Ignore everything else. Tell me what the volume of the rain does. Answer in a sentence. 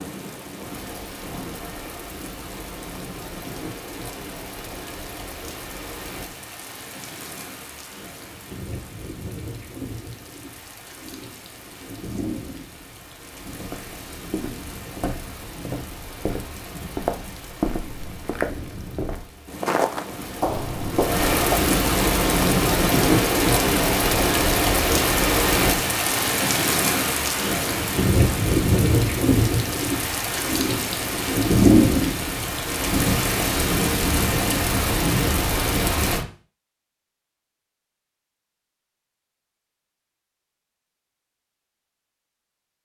The volume of the rain goes up.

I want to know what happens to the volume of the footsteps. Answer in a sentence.
The volume of the footsteps goes up.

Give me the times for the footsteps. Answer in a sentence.
You can hear the footsteps from 13.6 to 21.6 s.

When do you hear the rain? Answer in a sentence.
The rain can be heard from 0.0 to 36.2 s.